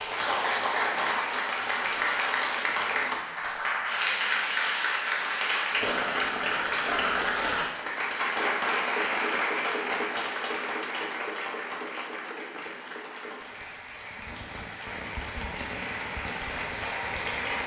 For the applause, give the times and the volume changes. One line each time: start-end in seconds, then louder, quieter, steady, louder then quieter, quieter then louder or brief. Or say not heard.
0.0-17.6 quieter.